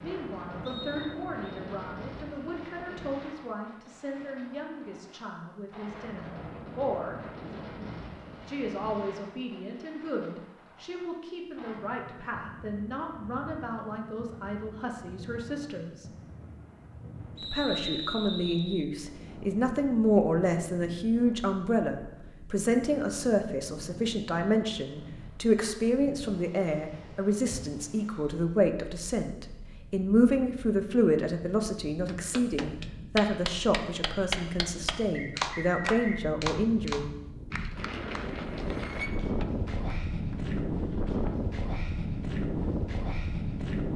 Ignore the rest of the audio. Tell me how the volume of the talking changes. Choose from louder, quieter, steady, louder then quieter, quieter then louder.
louder.